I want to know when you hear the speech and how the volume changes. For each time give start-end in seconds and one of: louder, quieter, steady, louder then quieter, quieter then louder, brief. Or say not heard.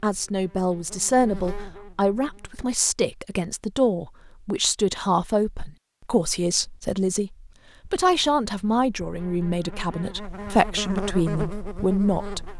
0.0-12.5 steady.